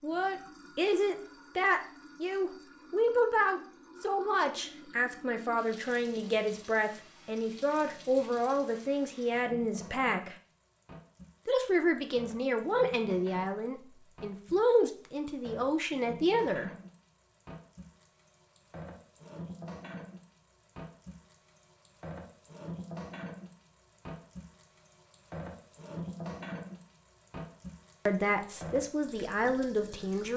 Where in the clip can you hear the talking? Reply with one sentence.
The talking can be heard from 0.0 to 10.3 s, from 11.4 to 16.7 s and from 28.1 to 30.3 s.